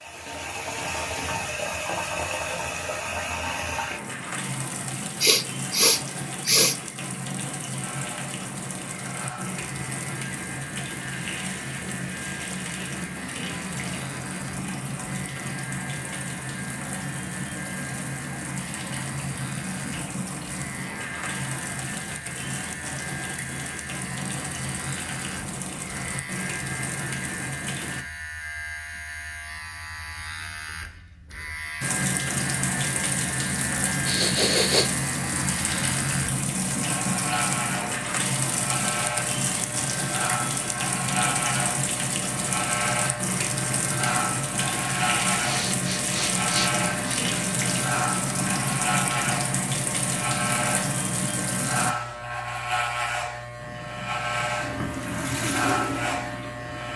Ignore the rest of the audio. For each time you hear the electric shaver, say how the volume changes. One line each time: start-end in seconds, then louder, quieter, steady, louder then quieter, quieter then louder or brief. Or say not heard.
7.8-56.9 louder.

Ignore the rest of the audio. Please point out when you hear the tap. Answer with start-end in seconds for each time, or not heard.
0.0-28.1, 31.8-51.9, 53.5-56.9.